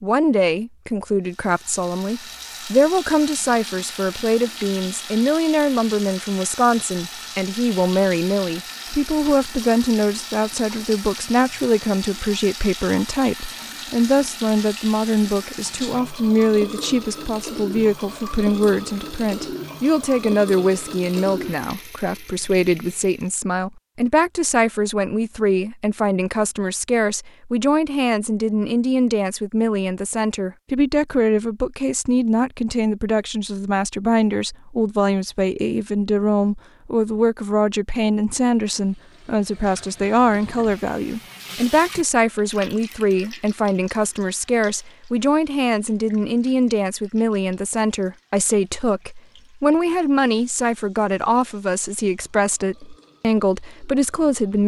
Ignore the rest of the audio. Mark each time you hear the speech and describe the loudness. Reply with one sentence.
You can hear the speech from 0.0 to 54.6 s, at a steady volume.